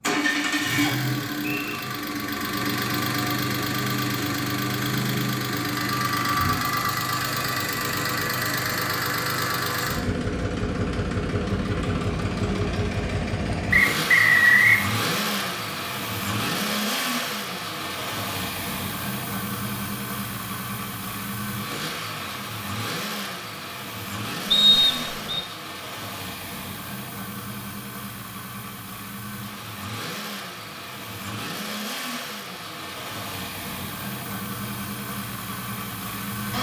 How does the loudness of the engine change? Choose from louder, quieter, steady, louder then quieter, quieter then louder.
quieter.